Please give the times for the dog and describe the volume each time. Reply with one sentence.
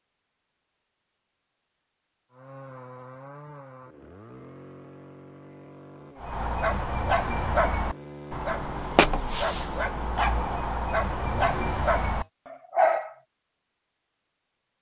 The dog can be heard from 6.2 to 13.2 s, at a steady volume.